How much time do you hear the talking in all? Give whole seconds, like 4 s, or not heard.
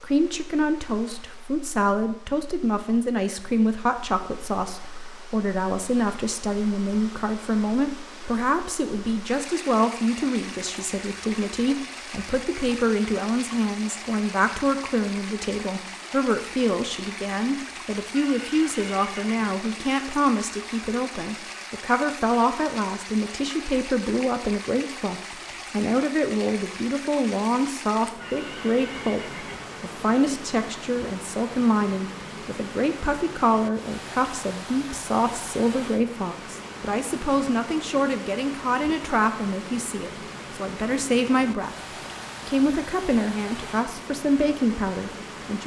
45 s.